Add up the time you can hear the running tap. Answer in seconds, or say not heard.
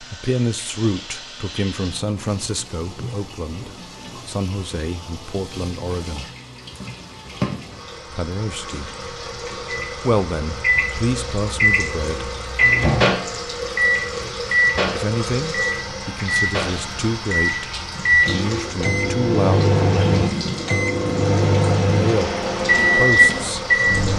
24 s.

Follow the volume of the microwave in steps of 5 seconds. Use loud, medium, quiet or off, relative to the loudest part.
off, off, loud, loud, loud.